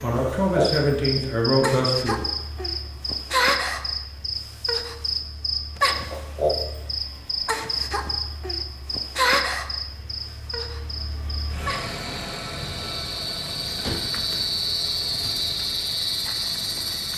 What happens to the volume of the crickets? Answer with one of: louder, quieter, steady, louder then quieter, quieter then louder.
quieter then louder.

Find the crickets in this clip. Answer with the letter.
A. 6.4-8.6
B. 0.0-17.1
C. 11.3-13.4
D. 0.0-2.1
B.